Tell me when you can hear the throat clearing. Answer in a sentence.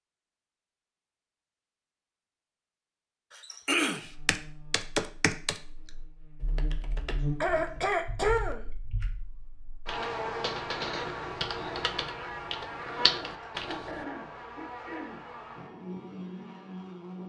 You can hear the throat clearing from 3.3 to 4.1 s, from 7.0 to 8.7 s and from 12.9 to 15.2 s.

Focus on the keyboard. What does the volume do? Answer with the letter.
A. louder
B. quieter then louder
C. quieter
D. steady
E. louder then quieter
B.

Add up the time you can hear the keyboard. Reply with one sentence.
You can hear the keyboard for 10 seconds altogether.